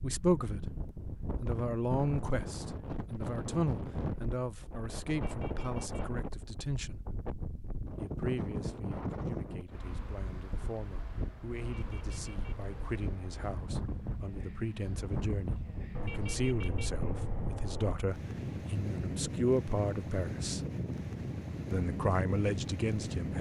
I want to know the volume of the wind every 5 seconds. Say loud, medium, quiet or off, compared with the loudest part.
loud, loud, medium, loud, loud.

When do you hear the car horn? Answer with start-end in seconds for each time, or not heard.
5.1-6.1, 11.6-13.6, 15.9-17.9.